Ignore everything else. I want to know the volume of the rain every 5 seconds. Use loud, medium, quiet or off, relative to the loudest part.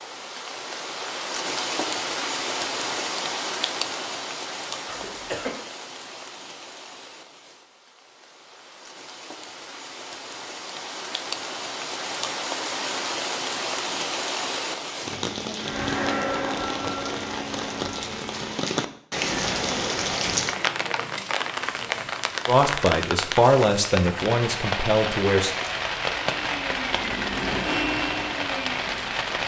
loud, quiet, loud, loud, loud, loud.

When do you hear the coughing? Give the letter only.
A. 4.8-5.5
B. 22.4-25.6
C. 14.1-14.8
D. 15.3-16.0
A.